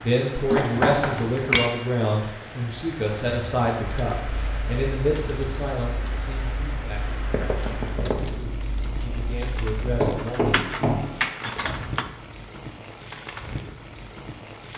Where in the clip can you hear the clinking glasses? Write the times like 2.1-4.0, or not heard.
0.5-1.7.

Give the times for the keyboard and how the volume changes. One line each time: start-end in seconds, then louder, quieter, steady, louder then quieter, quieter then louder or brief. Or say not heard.
3.8-12.1 louder.